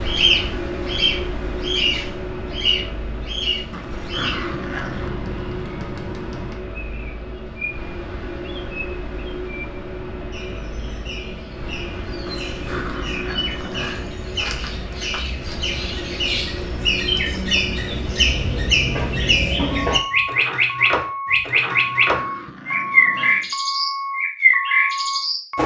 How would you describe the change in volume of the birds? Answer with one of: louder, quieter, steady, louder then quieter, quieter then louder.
quieter then louder.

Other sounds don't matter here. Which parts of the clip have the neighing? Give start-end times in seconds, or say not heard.
not heard.